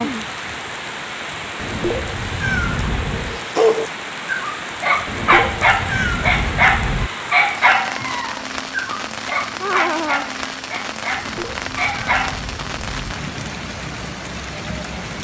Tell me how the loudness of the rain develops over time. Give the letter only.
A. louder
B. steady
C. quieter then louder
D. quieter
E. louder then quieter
B.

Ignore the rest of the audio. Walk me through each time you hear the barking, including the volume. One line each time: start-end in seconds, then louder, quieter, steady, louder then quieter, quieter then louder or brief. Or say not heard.
3.1-12.4 quieter.